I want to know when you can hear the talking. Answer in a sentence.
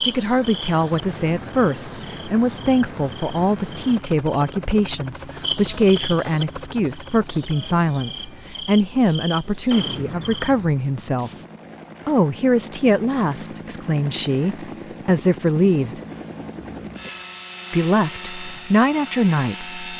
You can hear the talking from 0.0 to 11.3 s, from 12.1 to 16.0 s and from 17.7 to 19.8 s.